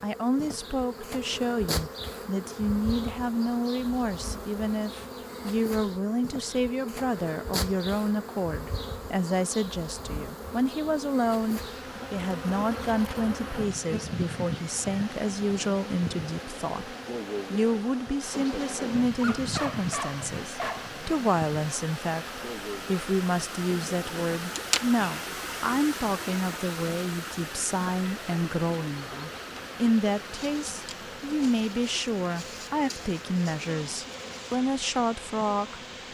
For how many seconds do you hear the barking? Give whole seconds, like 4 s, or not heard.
2 s.